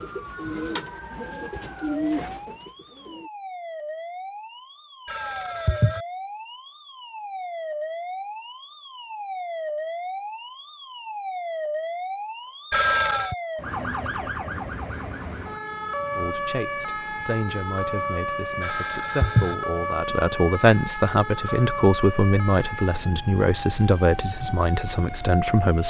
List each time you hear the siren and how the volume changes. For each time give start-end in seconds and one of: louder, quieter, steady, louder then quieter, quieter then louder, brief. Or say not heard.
0.0-25.8 louder.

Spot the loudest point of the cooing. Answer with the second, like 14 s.
2 s.